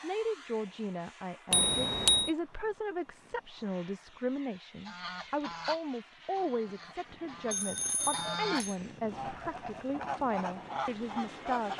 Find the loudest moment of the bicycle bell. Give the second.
2 s.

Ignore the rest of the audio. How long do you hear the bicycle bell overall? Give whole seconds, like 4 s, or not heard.
2 s.